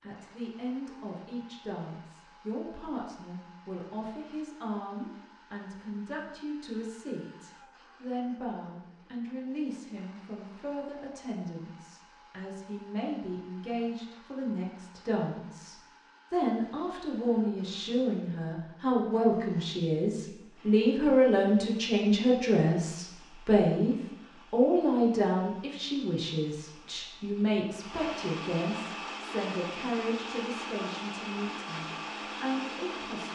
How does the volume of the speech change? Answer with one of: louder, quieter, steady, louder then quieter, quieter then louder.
louder then quieter.